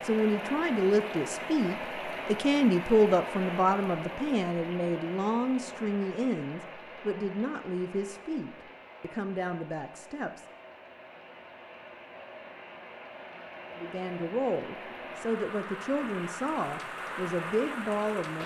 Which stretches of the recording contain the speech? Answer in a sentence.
You can hear the speech from 0.0 to 10.4 s and from 13.8 to 18.4 s.